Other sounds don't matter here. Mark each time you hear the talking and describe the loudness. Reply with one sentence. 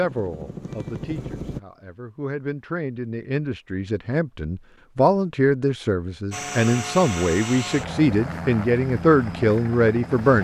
The talking can be heard from 0.0 to 10.4 s, getting louder.